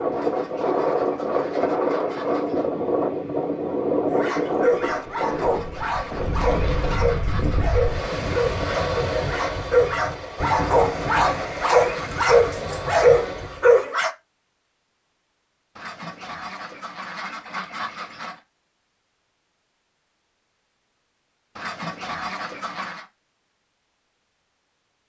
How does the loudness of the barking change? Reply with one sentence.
The loudness of the barking goes up.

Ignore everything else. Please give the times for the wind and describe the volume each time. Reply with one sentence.
The wind can be heard from 0.0 to 13.8 s, getting quieter.